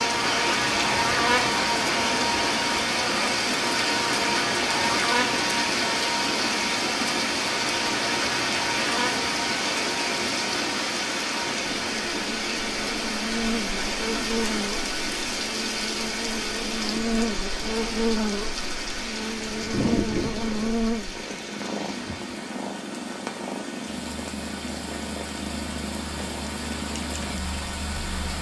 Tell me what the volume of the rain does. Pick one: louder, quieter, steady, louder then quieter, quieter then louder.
quieter.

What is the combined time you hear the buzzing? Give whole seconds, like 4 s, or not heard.
21 s.